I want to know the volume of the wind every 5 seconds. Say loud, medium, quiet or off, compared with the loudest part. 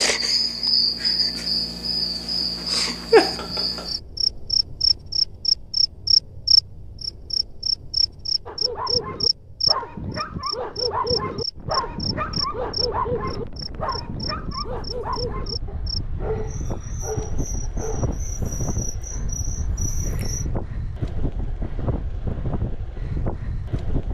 off, off, medium, loud, loud.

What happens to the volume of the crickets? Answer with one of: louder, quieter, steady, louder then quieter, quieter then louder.
quieter then louder.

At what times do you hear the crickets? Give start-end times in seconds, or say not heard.
0.0-20.4.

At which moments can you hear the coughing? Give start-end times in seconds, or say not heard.
not heard.